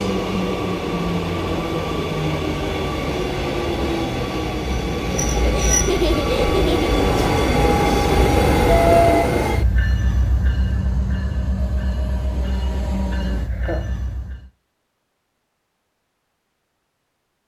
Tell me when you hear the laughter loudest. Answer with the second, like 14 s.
6 s.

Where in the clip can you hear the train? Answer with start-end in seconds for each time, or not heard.
0.0-14.5.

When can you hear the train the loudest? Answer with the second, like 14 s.
9 s.